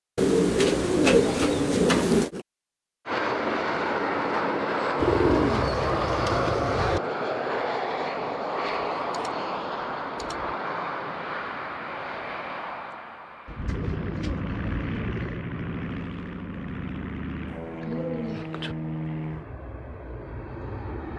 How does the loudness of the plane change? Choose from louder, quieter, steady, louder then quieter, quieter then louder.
quieter.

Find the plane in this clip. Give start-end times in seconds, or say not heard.
3.0-21.1.